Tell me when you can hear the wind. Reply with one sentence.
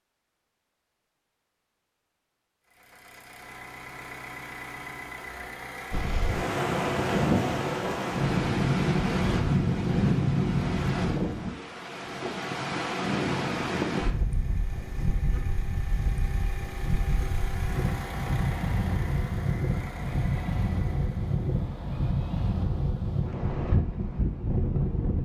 The wind can be heard from 5.9 to 25.2 s.